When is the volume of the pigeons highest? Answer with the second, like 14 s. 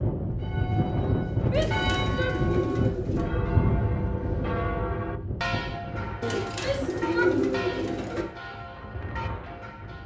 7 s.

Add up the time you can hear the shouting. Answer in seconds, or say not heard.
2 s.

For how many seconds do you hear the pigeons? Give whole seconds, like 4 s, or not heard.
4 s.